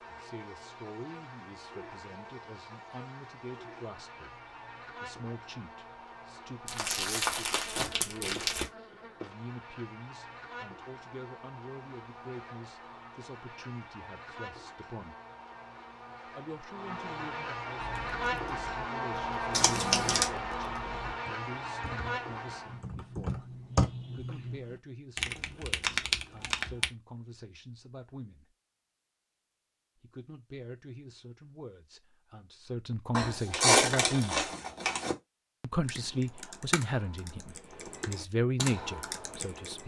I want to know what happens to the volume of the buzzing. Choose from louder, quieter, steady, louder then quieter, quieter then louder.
louder.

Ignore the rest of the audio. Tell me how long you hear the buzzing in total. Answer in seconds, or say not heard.
23 s.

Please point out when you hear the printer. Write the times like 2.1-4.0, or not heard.
not heard.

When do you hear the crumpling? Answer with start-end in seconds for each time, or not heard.
6.7-8.7, 19.5-20.2, 33.1-35.1.